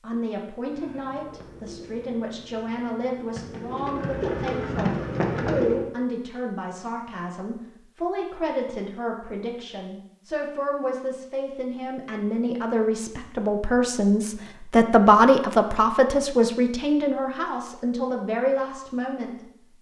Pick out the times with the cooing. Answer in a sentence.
The cooing can be heard from 0.6 to 5.9 s.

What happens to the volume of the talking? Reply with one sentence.
The loudness of the talking goes up.